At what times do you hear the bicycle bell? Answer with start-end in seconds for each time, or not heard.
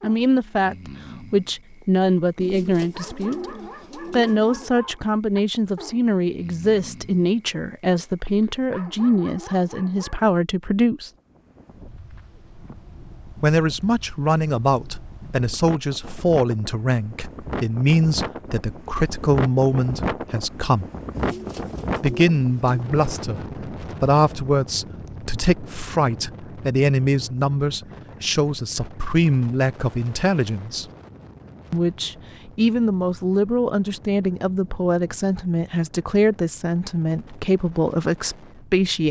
not heard.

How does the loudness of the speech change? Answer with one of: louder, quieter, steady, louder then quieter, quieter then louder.
steady.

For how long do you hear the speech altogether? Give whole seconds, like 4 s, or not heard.
35 s.